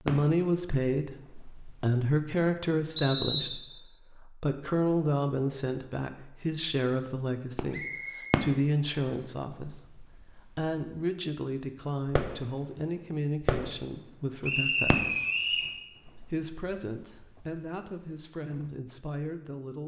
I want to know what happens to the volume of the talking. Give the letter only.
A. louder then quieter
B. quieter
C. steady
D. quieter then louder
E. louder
B.